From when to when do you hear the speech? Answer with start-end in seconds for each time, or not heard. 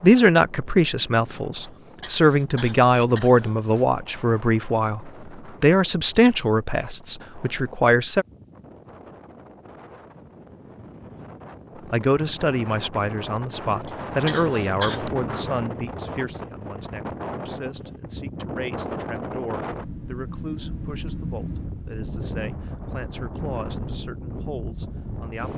0.0-8.2, 11.8-25.5.